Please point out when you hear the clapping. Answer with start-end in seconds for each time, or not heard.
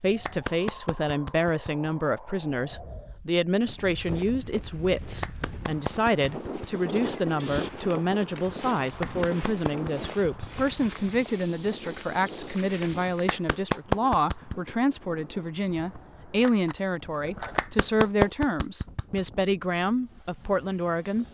0.2-1.9, 5.0-6.8, 8.8-10.7, 13.1-14.7, 17.4-19.2.